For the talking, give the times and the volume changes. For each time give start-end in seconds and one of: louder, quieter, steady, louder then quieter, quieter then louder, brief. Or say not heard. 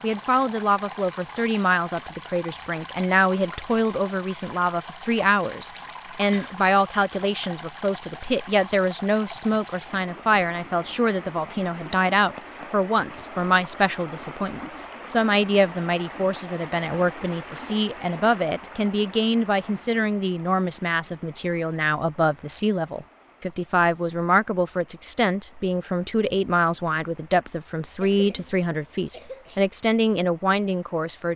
0.0-31.3 steady.